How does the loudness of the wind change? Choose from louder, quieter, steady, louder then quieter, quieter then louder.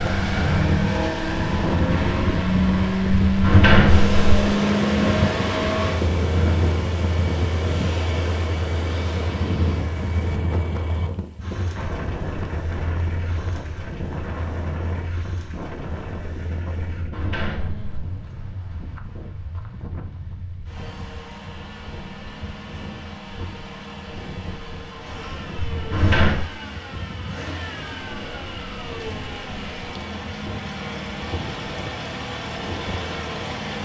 quieter.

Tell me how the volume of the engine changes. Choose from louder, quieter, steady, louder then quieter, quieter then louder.
quieter then louder.